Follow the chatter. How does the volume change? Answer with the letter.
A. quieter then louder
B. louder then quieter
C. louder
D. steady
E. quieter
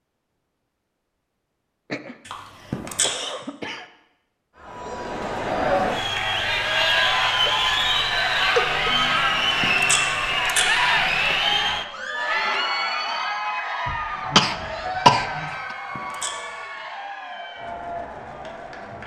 E.